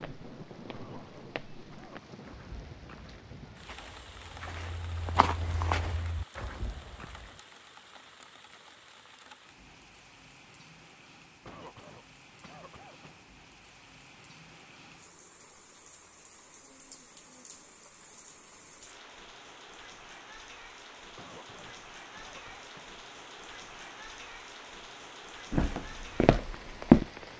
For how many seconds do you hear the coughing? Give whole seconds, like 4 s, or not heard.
5 s.